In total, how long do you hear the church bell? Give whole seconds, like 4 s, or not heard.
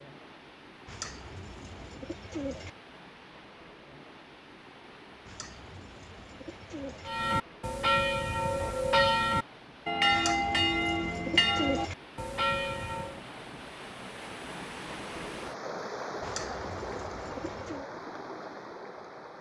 6 s.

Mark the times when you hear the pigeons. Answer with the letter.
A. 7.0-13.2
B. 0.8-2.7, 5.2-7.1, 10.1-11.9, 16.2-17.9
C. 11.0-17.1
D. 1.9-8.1
B.